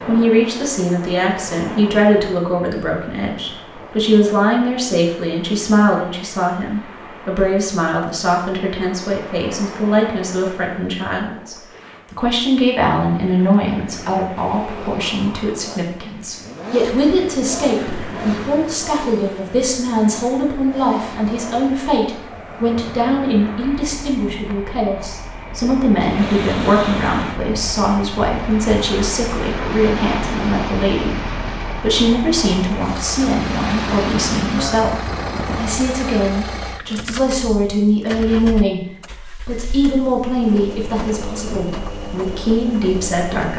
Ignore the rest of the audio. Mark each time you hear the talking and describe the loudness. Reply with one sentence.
You can hear the talking from 0.1 to 43.5 s, at a steady volume.